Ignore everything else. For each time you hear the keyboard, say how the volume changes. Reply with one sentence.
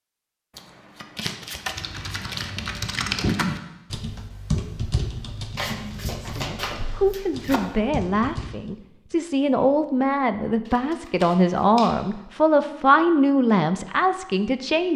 The keyboard can be heard from 1.6 to 8.7 s, getting quieter.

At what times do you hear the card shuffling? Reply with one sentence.
The card shuffling can be heard from 0.6 to 2.5 s, from 5.5 to 7.6 s and from 10.7 to 11.9 s.